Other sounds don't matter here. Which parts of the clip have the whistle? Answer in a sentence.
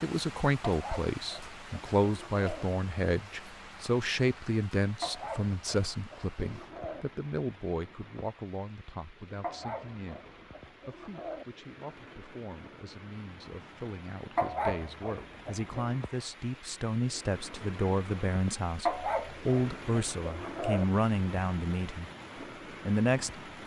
You can't hear the whistle here.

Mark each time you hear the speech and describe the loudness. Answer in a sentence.
The speech can be heard from 0.0 to 22.1 s, getting quieter then louder; and briefly from 22.9 to 23.4 s.